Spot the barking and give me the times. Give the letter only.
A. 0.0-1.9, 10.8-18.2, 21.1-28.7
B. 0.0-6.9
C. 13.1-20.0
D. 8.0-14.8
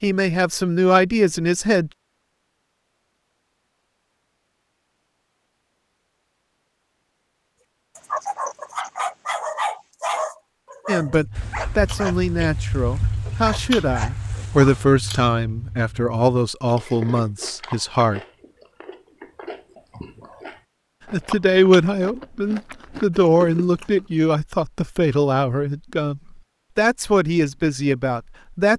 D.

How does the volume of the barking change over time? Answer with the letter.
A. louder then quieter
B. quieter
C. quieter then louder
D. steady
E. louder
B.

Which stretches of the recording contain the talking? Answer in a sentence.
You can hear the talking from 0.0 to 1.9 s, from 10.8 to 18.2 s and from 21.1 to 28.7 s.